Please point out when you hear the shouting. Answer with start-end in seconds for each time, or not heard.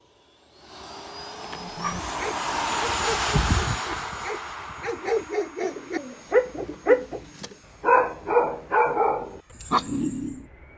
not heard.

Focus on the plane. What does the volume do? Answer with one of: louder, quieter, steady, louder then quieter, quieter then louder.
louder then quieter.